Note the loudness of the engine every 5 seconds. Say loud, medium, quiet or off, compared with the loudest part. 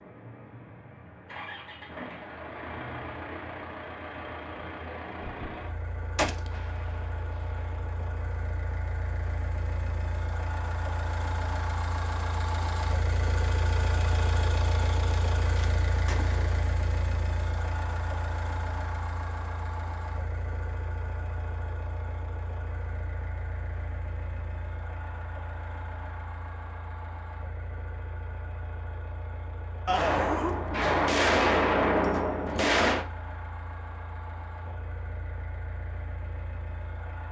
medium, medium, loud, loud, medium, medium, medium, medium.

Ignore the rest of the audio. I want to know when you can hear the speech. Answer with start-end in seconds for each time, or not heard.
not heard.